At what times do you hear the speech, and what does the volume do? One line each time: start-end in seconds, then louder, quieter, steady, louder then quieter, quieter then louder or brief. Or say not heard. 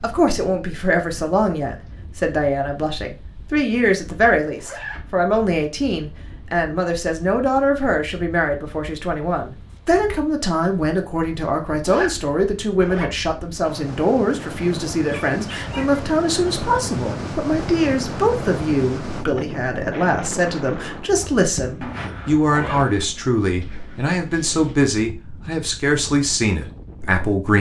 0.0-27.5 steady.